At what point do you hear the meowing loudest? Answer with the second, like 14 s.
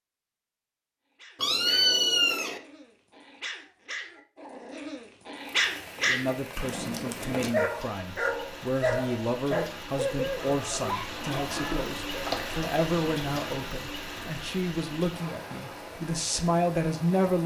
2 s.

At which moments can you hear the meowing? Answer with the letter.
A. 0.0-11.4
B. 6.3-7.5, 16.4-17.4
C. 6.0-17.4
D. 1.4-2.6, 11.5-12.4
D.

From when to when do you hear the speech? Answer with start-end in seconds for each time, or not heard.
6.0-17.4.